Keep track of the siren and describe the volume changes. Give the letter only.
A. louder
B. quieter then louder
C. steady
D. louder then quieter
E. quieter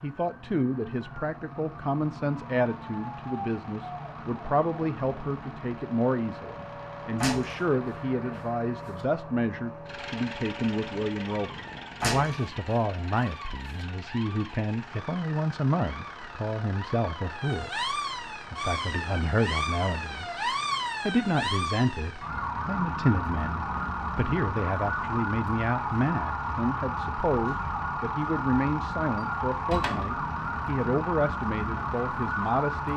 A.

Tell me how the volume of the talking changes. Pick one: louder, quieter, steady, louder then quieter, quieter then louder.
steady.